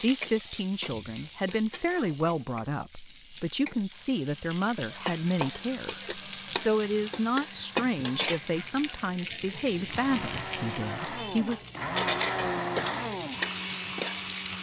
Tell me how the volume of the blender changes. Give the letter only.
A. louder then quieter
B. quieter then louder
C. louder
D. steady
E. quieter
C.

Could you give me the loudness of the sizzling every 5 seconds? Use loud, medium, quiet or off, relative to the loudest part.
medium, loud, loud.